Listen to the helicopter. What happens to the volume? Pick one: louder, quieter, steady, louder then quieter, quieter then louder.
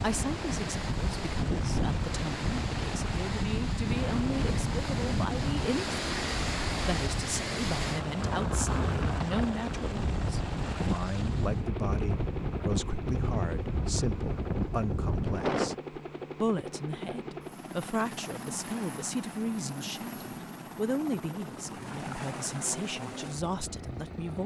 steady.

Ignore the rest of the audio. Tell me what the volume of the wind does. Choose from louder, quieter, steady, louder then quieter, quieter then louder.
steady.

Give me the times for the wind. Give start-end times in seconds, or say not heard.
0.0-15.8.